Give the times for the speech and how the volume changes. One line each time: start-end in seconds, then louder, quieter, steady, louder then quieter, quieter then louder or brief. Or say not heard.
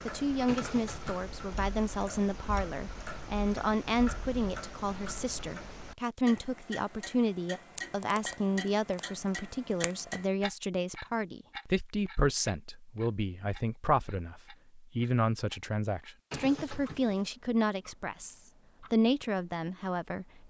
0.1-20.4 steady.